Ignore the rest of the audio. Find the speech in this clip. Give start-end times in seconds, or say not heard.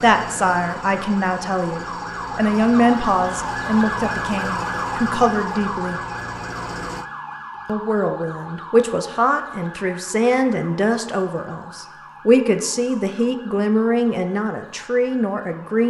0.0-6.0, 7.7-15.8.